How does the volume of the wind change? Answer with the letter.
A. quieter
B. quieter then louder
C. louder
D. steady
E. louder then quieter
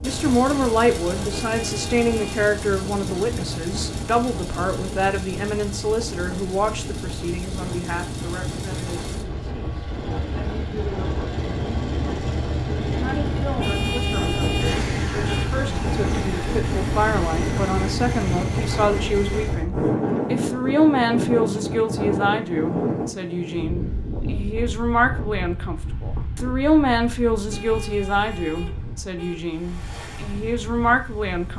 E.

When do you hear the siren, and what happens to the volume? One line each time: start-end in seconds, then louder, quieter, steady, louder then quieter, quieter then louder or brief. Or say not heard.
not heard.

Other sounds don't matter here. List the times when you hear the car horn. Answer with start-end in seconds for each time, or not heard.
1.3-2.5, 13.6-15.5, 27.5-29.4.